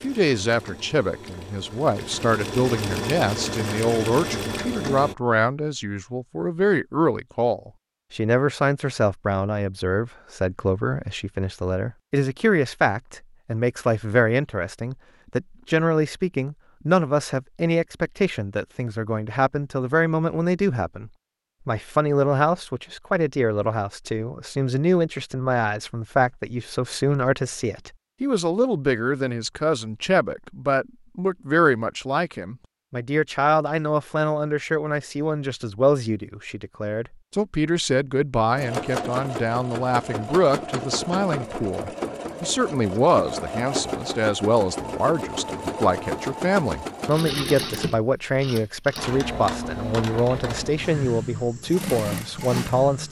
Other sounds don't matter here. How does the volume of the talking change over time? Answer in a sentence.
The volume of the talking stays about the same.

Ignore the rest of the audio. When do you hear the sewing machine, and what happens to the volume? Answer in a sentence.
The sewing machine can be heard from 0.0 to 5.2 s, getting louder; and from 38.5 to 53.0 s, at a steady volume.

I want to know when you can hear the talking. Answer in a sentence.
You can hear the talking from 0.0 to 53.0 s.